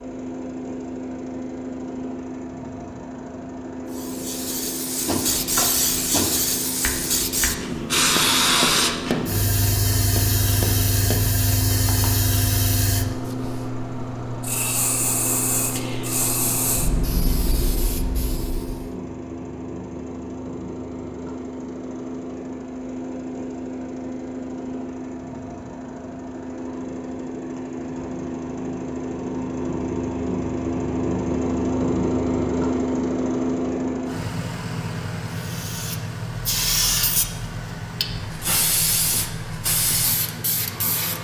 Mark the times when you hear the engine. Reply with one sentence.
The engine can be heard from 0.0 to 41.1 s.